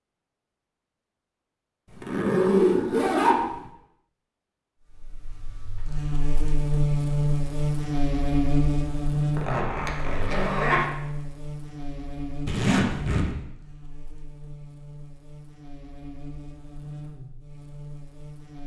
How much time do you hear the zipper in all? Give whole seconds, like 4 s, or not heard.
4 s.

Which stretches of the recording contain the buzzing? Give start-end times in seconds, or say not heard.
4.8-18.6.